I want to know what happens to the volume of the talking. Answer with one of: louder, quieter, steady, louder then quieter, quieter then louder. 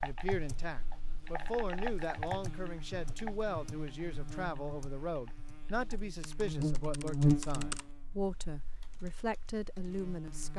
steady.